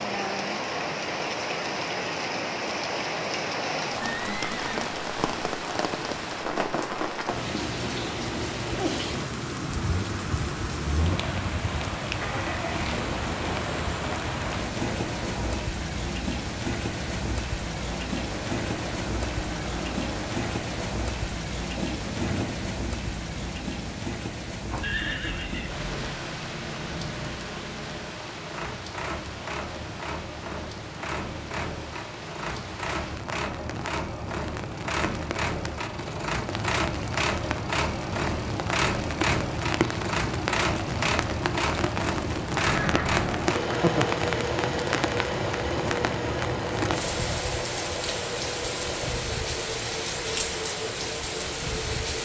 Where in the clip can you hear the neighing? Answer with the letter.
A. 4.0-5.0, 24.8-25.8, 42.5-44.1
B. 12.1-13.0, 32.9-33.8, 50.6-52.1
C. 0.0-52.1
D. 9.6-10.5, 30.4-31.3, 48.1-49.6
A.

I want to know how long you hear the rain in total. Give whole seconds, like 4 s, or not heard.
52 s.